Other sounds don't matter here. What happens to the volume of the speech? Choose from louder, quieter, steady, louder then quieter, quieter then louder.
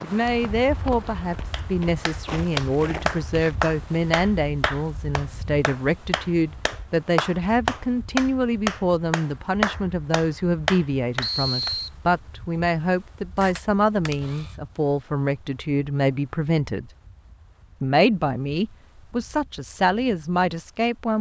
steady.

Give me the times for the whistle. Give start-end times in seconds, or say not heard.
11.2-11.9.